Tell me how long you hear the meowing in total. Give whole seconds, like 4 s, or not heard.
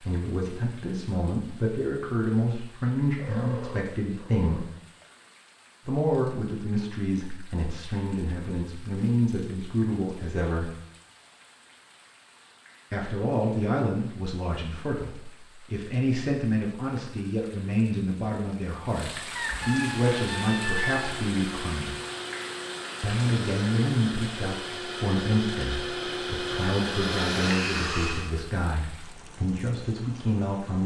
4 s.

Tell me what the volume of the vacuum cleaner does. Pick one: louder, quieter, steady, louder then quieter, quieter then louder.
louder.